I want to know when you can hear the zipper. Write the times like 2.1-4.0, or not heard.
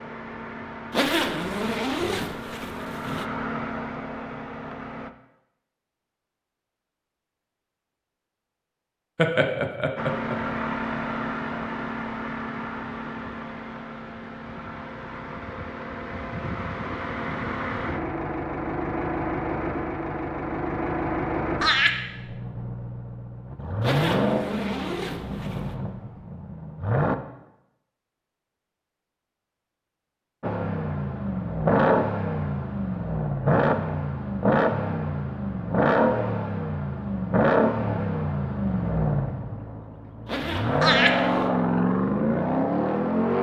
0.9-3.2, 23.8-25.8, 40.2-41.5.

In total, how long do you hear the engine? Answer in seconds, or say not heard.
35 s.